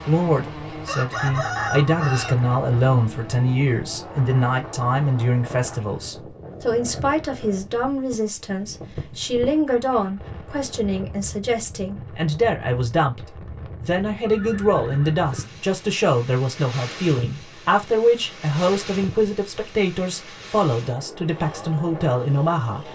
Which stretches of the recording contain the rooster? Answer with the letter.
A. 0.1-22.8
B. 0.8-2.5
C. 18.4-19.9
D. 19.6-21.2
B.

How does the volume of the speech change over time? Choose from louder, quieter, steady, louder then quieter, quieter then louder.
steady.